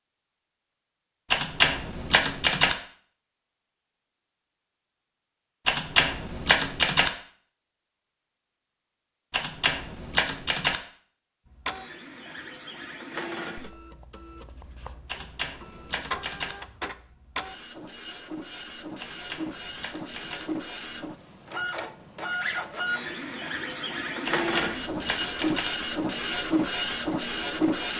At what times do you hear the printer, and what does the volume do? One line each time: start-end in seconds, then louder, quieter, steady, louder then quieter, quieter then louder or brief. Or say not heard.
11.4-27.9 louder.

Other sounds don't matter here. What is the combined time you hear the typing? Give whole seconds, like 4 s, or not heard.
9 s.